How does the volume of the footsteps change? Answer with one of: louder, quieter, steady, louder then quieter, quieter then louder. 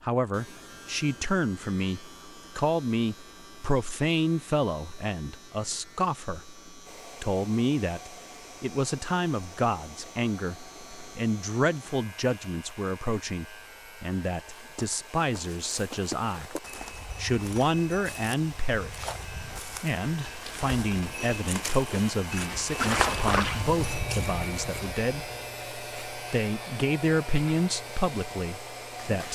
louder.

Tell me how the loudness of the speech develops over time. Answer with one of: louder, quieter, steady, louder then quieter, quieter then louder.
steady.